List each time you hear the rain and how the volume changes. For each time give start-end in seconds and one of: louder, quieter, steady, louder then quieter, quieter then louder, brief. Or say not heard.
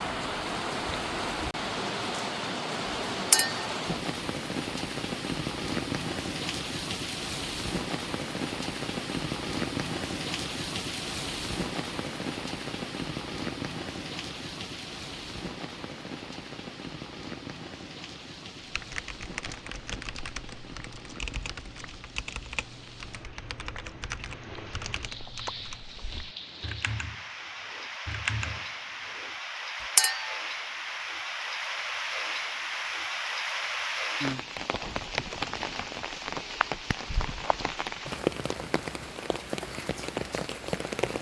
0.0-41.1 quieter then louder.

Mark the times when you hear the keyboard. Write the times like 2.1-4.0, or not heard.
18.6-29.9.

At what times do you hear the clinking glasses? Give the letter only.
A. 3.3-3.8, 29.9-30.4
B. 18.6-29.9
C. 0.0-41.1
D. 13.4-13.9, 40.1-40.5
A.